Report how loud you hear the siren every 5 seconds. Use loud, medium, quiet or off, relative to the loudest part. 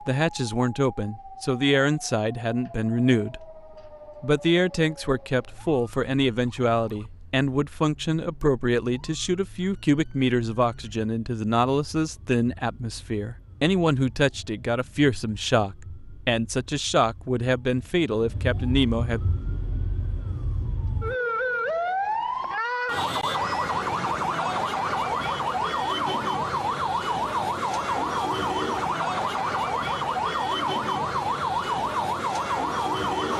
quiet, quiet, quiet, quiet, loud, loud, loud.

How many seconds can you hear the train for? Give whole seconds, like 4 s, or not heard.
not heard.